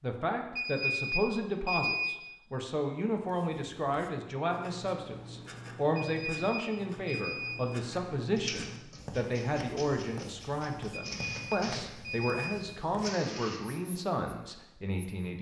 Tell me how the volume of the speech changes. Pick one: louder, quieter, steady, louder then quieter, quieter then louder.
steady.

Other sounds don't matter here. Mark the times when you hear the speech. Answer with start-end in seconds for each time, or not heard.
0.0-15.3.